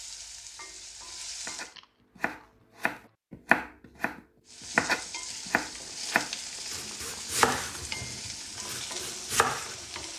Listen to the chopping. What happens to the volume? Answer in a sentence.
The loudness of the chopping goes up, then down.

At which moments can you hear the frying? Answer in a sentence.
You can hear the frying from 0.0 to 1.8 s and from 4.5 to 10.1 s.